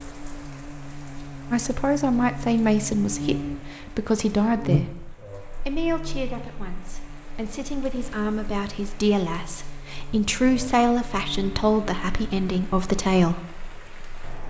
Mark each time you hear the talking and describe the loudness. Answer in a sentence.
You can hear the talking from 1.5 to 13.4 s, getting quieter then louder.